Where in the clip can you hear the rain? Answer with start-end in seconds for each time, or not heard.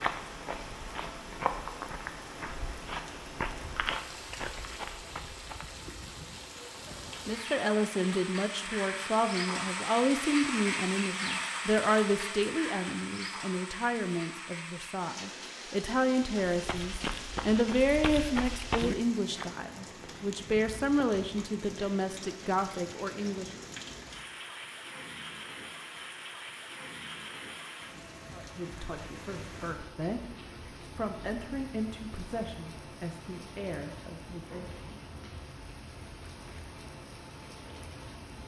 0.0-38.4.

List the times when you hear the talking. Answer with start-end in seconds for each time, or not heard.
7.2-23.5, 28.3-34.9.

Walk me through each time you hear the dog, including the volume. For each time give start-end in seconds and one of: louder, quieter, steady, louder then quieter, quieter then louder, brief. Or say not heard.
not heard.